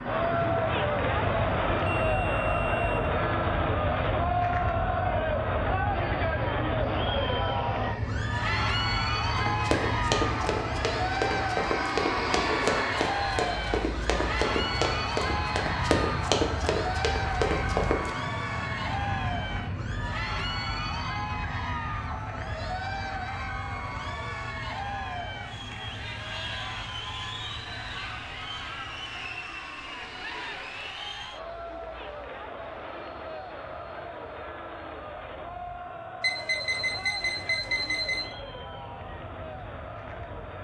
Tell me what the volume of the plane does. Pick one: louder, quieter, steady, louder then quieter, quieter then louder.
quieter.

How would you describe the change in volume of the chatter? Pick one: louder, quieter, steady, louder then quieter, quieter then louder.
quieter.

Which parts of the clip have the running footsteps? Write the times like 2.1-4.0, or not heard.
9.3-18.1.